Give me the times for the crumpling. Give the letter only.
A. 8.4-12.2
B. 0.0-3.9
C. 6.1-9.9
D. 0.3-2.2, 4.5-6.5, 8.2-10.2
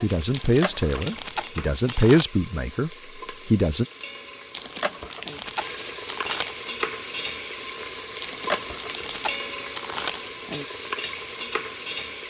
D.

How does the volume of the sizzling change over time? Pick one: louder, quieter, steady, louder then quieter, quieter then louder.
louder.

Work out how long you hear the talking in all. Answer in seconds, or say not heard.
4 s.